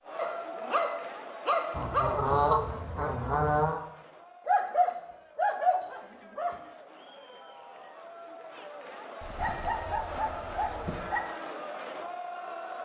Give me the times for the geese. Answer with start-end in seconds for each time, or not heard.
1.7-3.8, 9.2-11.1.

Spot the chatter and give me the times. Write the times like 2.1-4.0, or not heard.
0.0-12.8.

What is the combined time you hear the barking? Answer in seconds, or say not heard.
6 s.